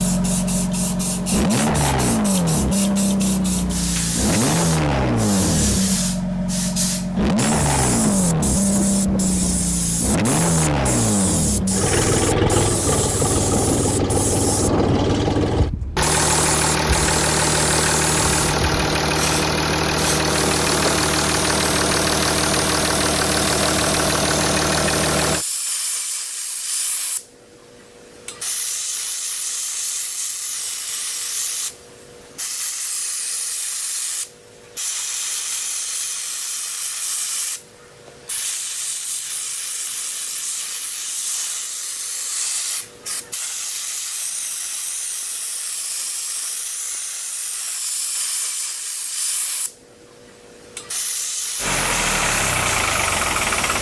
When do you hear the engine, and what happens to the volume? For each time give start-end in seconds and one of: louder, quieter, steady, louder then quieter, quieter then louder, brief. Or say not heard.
0.0-25.4 steady
51.5-53.7 brief.